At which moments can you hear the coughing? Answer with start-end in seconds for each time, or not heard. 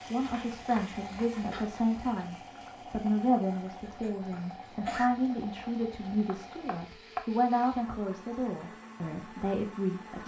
3.8-5.1.